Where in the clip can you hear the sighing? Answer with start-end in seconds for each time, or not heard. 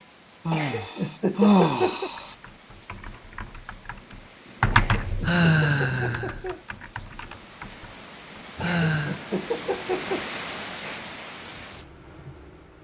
0.5-2.4, 5.2-6.4, 8.6-9.2.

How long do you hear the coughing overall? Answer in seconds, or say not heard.
5 s.